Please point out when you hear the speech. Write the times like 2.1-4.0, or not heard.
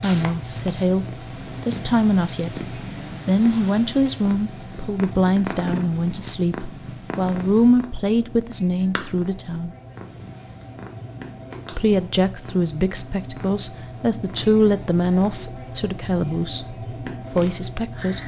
0.0-9.7, 11.7-18.2.